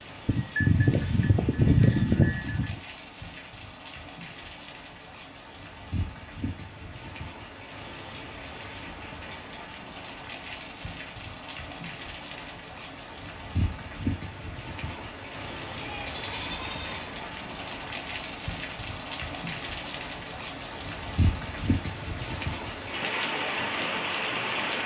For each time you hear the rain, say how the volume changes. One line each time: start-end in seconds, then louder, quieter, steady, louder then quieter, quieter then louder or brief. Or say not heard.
0.0-24.8 louder.